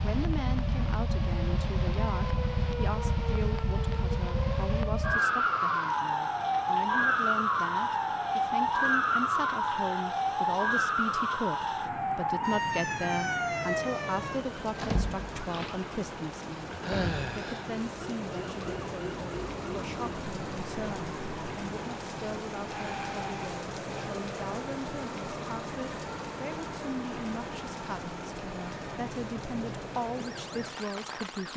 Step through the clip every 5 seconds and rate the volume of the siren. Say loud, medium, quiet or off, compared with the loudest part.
medium, loud, loud, medium, quiet, quiet, quiet.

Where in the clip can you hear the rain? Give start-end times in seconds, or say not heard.
0.0-31.5.